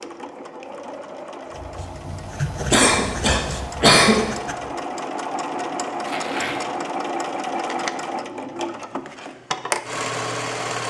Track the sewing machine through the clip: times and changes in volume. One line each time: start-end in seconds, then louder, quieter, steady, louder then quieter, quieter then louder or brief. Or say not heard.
0.0-10.8 louder.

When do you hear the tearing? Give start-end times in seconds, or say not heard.
6.0-6.7.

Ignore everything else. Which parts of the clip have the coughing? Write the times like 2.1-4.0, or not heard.
2.7-4.2.